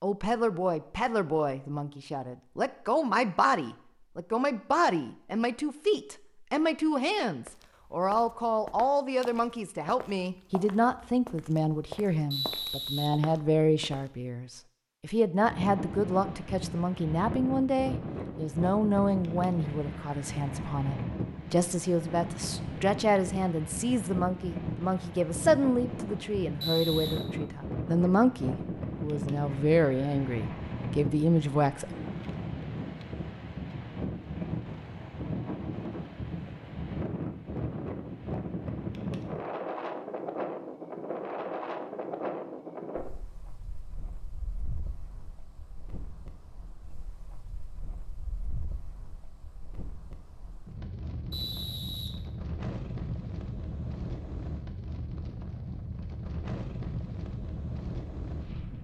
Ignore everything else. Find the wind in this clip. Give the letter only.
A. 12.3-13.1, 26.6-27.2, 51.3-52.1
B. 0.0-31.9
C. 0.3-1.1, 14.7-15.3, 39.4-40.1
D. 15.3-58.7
D.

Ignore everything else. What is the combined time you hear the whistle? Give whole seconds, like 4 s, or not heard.
2 s.